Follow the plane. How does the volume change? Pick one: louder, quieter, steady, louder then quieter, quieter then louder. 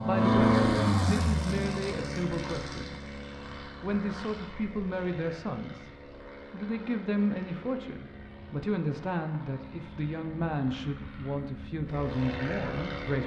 quieter then louder.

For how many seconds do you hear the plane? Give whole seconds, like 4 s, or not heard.
13 s.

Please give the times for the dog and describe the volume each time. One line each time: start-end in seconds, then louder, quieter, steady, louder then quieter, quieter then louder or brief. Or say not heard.
not heard.